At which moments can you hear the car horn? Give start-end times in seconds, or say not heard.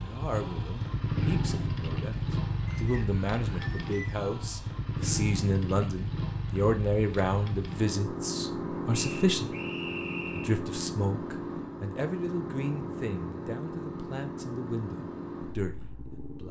not heard.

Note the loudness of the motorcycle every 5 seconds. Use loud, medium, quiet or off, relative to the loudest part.
loud, loud, loud, medium.